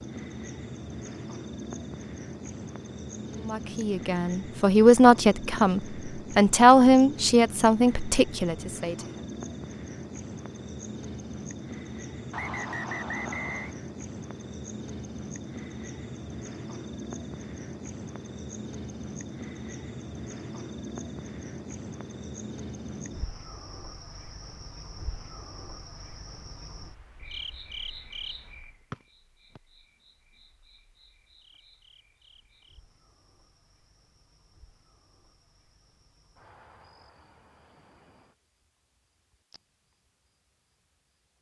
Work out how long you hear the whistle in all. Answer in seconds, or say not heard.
2 s.